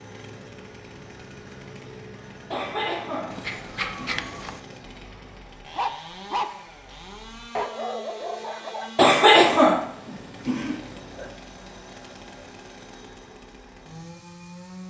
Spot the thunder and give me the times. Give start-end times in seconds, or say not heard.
not heard.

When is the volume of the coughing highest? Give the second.
9 s.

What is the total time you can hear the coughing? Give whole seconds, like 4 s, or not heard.
5 s.